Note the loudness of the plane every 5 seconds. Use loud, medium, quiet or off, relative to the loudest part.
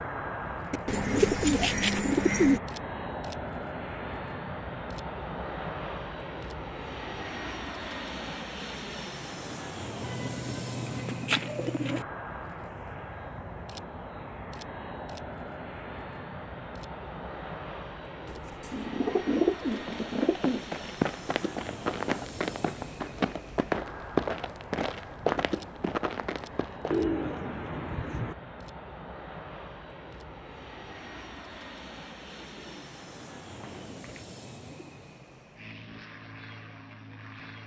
loud, loud, loud, loud, medium, medium, medium, medium.